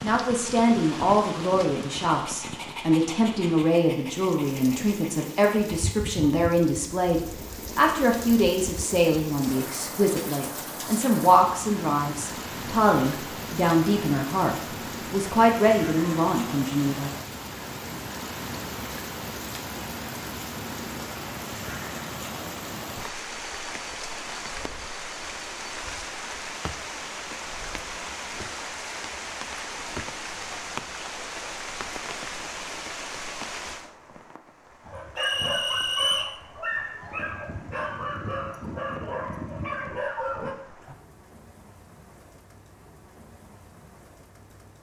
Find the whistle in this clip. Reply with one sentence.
The whistle can be heard from 35.1 to 36.4 s.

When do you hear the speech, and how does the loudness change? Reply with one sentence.
You can hear the speech from 0.0 to 17.1 s, at a steady volume.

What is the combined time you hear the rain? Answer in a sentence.
The rain can be heard for 45 seconds in total.